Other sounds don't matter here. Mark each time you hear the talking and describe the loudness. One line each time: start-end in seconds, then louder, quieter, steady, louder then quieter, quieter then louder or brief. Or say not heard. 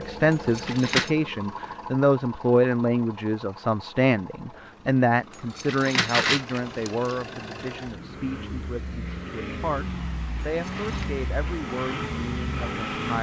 0.0-13.1 quieter.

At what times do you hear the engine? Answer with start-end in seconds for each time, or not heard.
0.0-13.1.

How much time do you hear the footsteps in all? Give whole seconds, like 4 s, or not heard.
not heard.